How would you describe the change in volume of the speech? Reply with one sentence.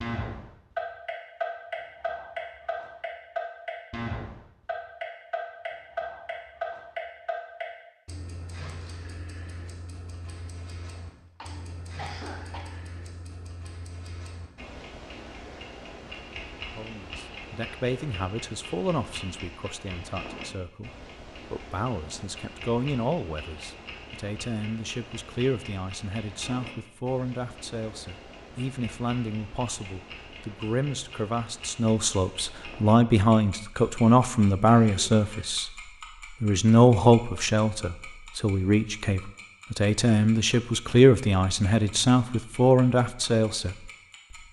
The volume of the speech goes up.